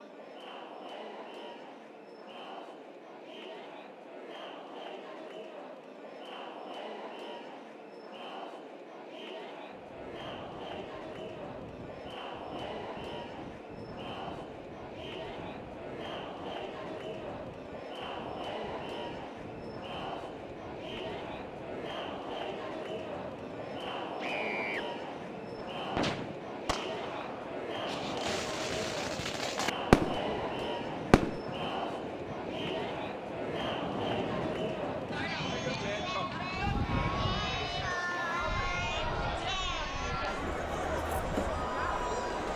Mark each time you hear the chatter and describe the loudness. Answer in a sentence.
The chatter can be heard from 0.0 to 42.5 s, getting louder.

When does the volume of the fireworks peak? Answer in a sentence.
The volume of the fireworks peaks at 30 seconds.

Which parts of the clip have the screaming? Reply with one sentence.
You can hear the screaming from 24.2 to 24.9 s.